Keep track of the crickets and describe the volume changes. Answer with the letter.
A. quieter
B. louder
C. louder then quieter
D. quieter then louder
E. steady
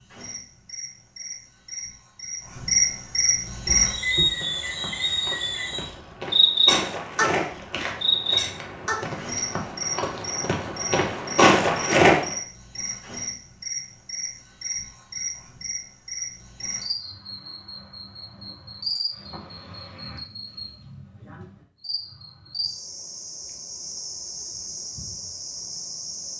A.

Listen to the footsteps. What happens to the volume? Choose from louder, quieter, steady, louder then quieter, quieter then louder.
louder.